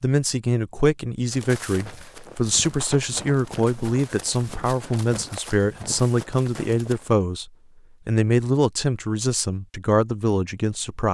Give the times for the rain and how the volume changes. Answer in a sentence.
You can't hear the rain here.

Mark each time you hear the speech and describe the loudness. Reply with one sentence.
You can hear the speech from 0.0 to 11.0 s, at a steady volume.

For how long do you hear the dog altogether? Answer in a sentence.
The dog can't be heard in this clip.